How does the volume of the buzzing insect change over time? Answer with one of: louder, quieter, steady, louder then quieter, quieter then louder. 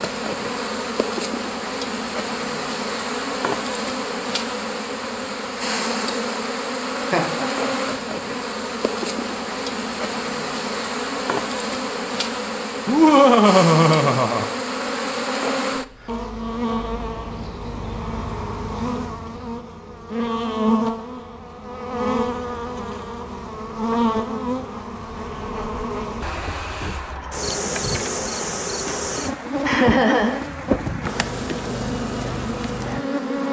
steady.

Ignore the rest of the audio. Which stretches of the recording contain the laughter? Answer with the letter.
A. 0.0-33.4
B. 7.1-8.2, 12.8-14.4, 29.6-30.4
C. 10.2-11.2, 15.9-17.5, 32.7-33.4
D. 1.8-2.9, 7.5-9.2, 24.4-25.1
B.